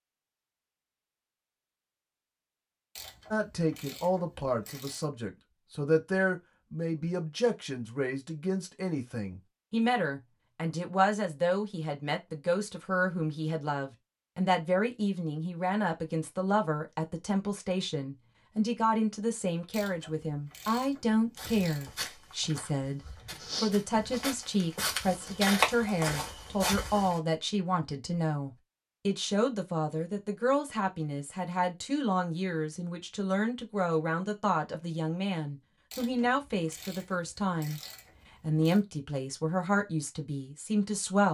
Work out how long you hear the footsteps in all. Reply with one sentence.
The footsteps can be heard for 6 seconds in total.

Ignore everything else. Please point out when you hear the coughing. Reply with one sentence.
The coughing can't be heard in this clip.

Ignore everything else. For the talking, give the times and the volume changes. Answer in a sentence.
The talking can be heard from 3.3 to 37.8 s, at a steady volume; and briefly from 38.4 to 41.2 s.